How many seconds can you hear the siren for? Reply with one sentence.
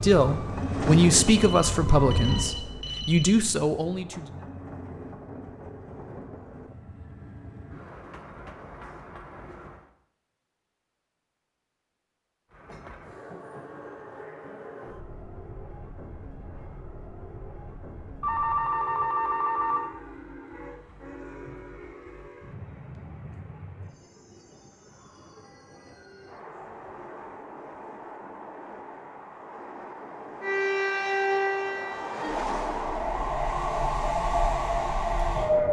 The siren can be heard for 8 seconds in total.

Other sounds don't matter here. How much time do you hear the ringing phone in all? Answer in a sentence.
The ringing phone can be heard for 4 seconds in total.